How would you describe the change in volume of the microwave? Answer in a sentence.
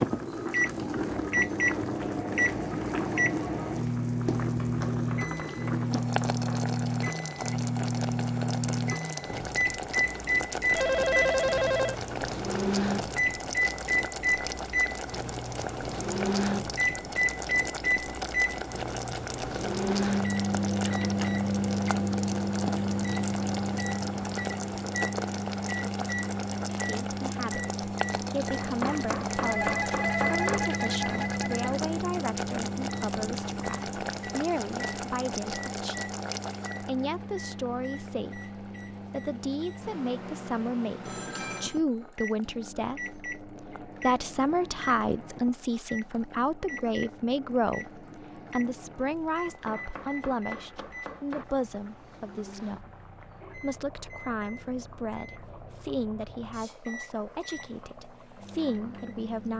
The volume of the microwave goes down.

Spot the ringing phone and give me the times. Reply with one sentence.
You can hear the ringing phone from 10.7 to 12.1 s, from 29.4 to 31.6 s and from 41.0 to 41.8 s.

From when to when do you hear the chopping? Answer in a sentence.
The chopping can be heard from 4.7 to 6.6 s, from 28.6 to 30.6 s and from 49.5 to 51.5 s.